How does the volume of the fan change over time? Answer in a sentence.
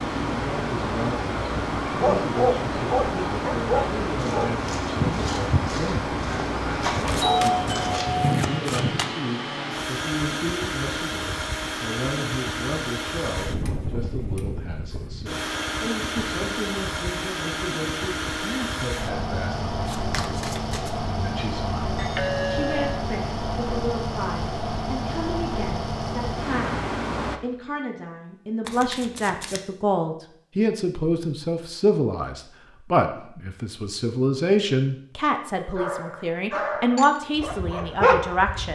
The volume of the fan stays about the same.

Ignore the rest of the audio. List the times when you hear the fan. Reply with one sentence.
You can hear the fan from 0.0 to 27.4 s.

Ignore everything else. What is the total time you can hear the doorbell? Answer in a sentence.
You can hear the doorbell for 3 seconds altogether.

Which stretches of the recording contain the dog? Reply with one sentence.
The dog can be heard from 1.9 to 8.2 s and from 35.5 to 38.6 s.